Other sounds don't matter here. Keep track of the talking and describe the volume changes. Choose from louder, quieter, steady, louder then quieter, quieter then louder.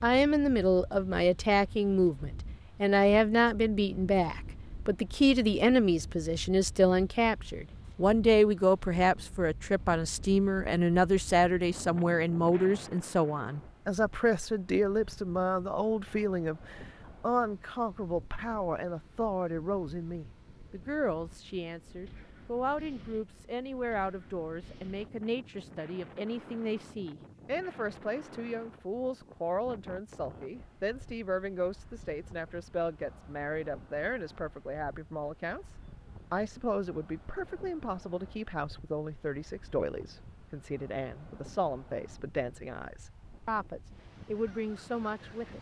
quieter.